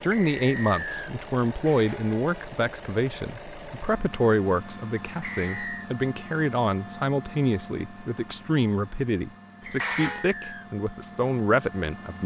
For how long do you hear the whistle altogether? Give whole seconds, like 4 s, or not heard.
3 s.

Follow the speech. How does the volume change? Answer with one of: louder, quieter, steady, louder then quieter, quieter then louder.
steady.